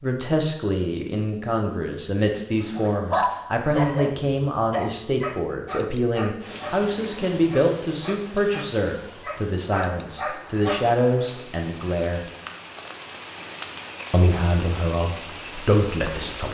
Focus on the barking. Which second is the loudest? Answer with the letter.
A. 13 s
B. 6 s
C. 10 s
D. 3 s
D.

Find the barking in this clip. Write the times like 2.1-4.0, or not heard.
2.6-11.0.